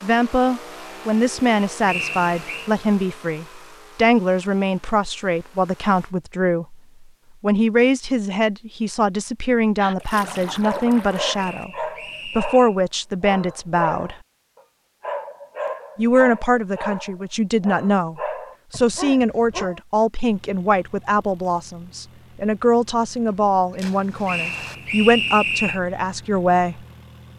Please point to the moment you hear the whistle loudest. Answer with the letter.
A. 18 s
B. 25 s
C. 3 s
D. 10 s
B.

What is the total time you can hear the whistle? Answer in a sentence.
You can hear the whistle for 4 seconds altogether.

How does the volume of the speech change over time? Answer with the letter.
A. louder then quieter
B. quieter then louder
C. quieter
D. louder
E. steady
E.